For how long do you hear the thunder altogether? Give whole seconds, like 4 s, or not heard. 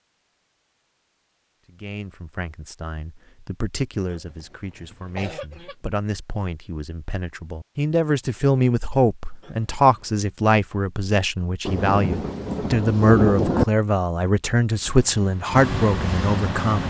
2 s.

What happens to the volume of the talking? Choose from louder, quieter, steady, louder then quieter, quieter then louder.
louder.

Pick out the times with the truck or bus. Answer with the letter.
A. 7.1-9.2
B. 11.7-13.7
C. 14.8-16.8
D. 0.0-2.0
C.